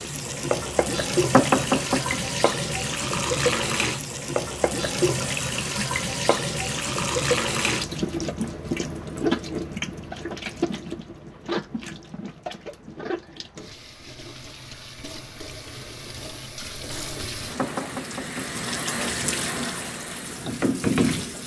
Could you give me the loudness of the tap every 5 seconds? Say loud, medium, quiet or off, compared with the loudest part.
loud, loud, medium, medium, loud.